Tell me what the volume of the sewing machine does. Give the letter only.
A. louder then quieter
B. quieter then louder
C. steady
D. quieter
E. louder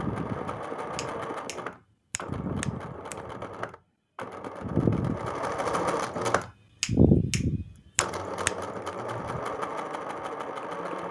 A.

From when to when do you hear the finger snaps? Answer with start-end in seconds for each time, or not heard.
0.9-3.1, 6.8-8.6.